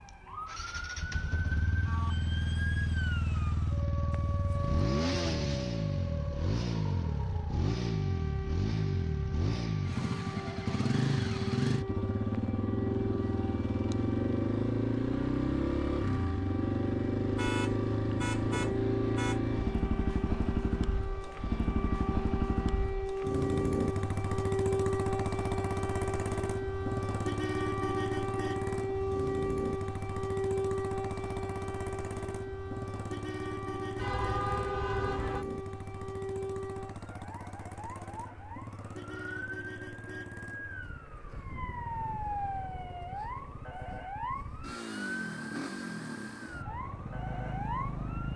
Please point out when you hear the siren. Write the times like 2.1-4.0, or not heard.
0.0-48.3.